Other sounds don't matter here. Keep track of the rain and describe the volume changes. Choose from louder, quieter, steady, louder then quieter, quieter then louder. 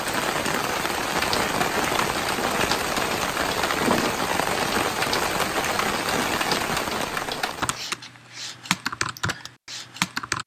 steady.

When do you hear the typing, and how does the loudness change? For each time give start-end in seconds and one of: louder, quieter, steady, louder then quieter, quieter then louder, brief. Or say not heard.
1.0-10.4 steady.